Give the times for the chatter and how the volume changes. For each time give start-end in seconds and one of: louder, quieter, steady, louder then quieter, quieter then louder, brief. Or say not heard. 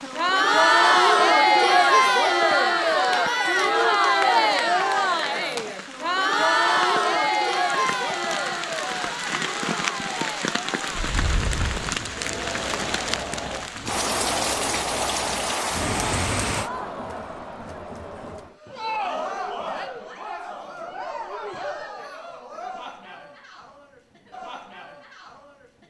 0.0-25.8 quieter.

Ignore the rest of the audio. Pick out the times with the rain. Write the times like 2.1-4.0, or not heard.
0.0-16.7.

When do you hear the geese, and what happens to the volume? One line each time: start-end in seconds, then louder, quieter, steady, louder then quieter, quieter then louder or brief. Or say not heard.
not heard.